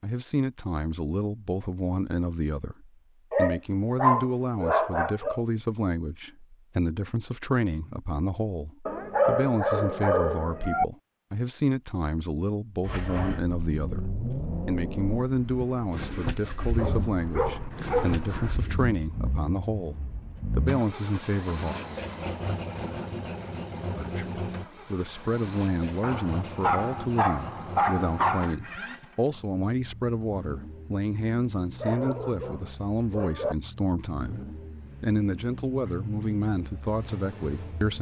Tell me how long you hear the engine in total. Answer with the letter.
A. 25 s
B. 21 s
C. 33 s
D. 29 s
A.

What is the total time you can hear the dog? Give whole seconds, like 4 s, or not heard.
10 s.